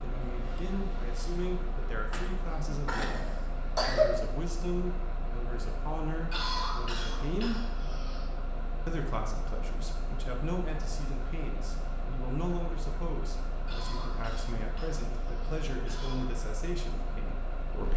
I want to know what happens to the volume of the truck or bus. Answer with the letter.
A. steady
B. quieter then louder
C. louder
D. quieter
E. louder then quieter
A.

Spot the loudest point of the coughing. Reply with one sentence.
The loudest moment of the coughing is at 4 seconds.